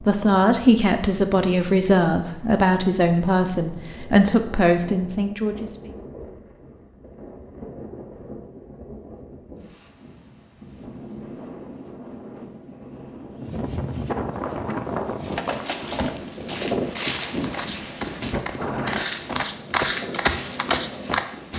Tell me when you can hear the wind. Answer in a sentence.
You can hear the wind from 0.0 to 21.5 s.